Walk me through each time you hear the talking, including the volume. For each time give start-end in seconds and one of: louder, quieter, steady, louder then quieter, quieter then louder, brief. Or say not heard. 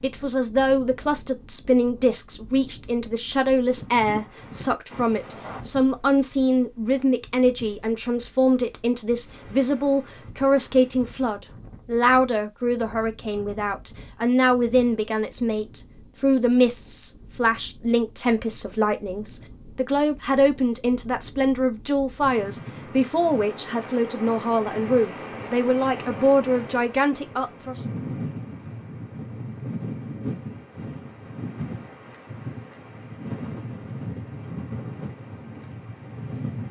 0.0-27.8 steady.